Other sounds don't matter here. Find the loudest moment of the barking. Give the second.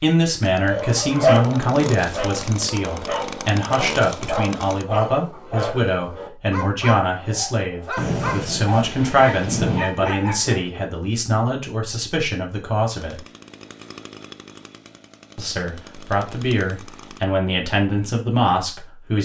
1 s.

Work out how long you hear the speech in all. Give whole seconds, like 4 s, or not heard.
17 s.